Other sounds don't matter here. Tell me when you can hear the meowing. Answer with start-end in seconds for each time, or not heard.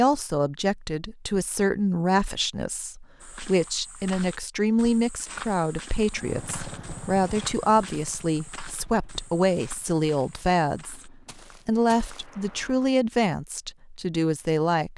not heard.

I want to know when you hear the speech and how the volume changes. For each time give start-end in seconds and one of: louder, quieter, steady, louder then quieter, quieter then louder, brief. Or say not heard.
0.0-14.9 steady.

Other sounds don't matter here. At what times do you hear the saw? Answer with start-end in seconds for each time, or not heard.
not heard.